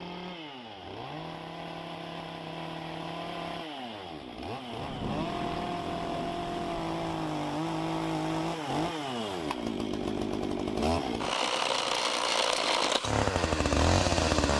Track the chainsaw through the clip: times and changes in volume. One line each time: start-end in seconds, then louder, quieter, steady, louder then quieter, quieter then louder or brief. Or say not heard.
0.0-14.5 louder.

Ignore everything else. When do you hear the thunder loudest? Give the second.
5 s.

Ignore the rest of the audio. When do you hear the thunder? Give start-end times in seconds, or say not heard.
4.8-7.2.